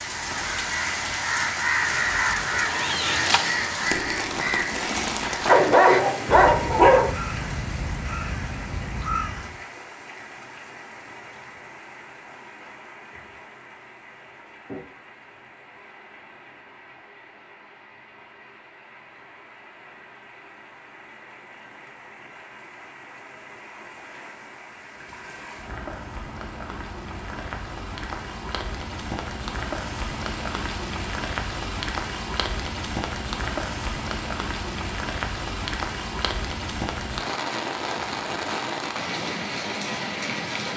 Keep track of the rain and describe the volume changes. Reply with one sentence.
The loudness of the rain goes down, then up.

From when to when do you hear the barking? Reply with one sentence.
You can hear the barking from 5.5 to 7.1 s.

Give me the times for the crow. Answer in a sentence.
The crow can be heard from 0.0 to 9.6 s.